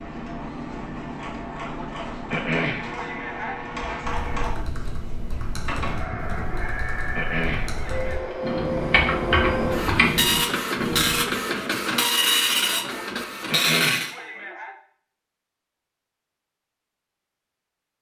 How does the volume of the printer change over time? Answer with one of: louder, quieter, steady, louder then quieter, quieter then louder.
louder.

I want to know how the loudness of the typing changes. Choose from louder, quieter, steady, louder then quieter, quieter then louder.
louder.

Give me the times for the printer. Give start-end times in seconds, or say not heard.
0.0-14.2.